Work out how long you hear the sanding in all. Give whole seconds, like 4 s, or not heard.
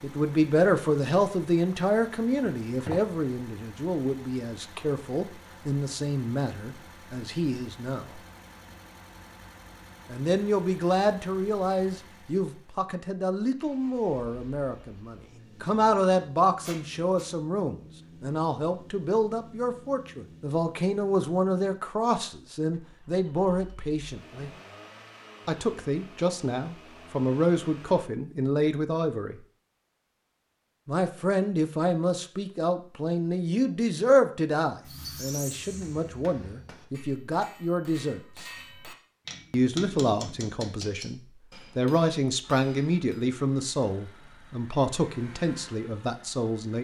not heard.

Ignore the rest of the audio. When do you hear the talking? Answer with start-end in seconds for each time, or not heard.
0.0-8.2, 10.1-24.5, 25.4-29.4, 30.9-38.5, 39.5-46.8.